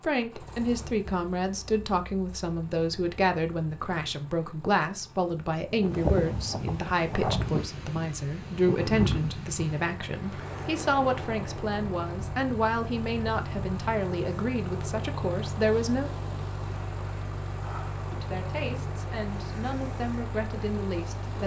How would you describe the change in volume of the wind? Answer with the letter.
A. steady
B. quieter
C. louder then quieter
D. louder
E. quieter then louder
B.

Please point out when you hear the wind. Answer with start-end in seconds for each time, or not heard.
5.7-21.4.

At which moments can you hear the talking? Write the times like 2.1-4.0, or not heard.
0.0-16.1, 18.1-21.4.